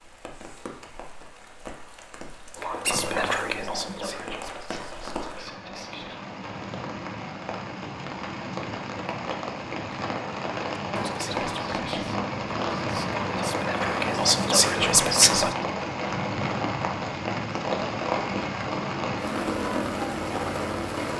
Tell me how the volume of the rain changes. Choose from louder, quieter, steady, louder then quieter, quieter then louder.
louder.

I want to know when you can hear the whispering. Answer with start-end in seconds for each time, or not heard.
2.5-6.3, 10.9-15.6.